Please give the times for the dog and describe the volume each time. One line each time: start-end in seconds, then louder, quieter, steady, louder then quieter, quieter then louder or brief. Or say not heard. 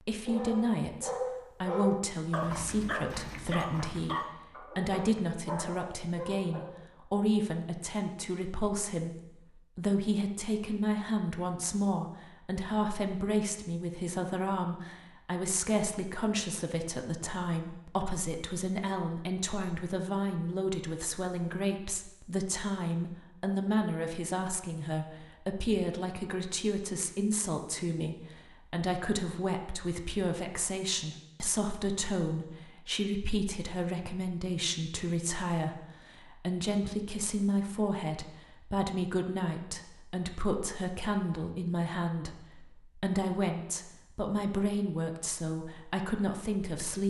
0.2-6.8 quieter.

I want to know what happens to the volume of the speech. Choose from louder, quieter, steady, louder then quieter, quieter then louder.
steady.